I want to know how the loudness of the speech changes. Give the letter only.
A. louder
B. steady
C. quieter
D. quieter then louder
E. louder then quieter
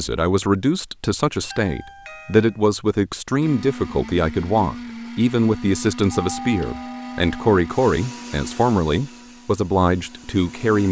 B.